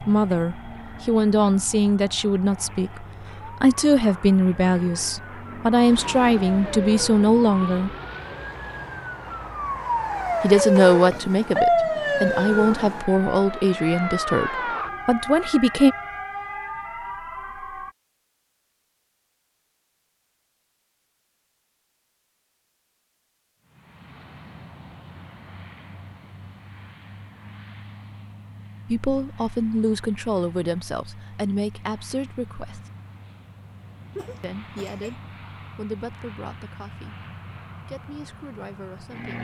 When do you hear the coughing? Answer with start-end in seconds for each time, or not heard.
34.1-35.1.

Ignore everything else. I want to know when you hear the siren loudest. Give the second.
12 s.